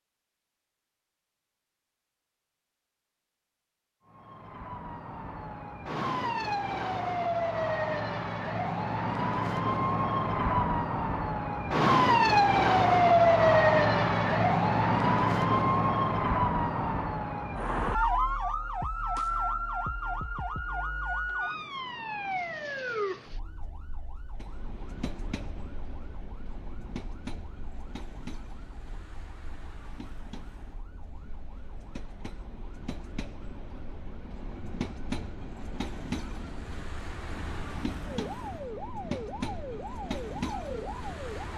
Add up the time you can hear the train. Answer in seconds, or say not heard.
17 s.